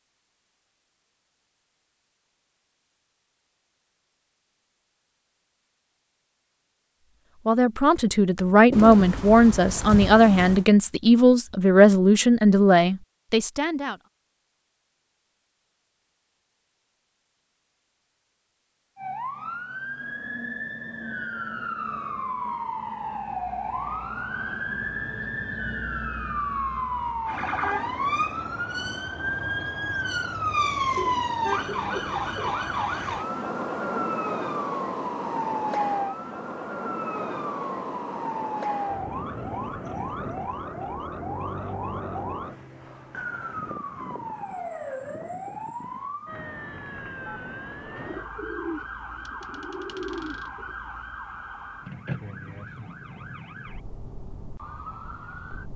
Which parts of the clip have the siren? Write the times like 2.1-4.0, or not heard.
18.9-55.7.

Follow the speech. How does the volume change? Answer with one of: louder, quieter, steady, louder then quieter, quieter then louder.
steady.